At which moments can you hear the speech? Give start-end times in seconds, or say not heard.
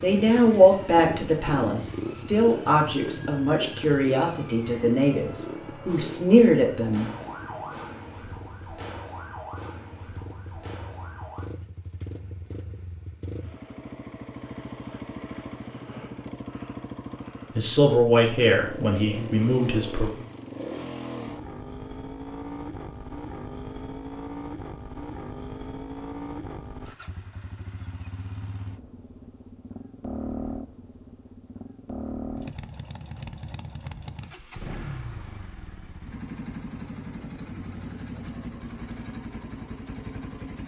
0.0-7.2, 17.6-20.1.